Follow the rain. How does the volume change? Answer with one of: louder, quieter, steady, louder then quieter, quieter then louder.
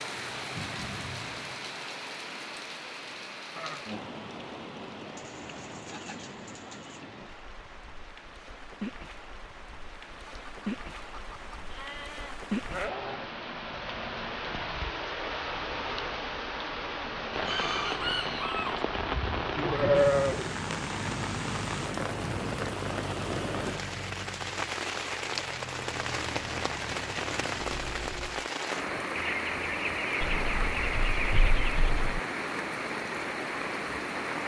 louder.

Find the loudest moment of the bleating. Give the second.
20 s.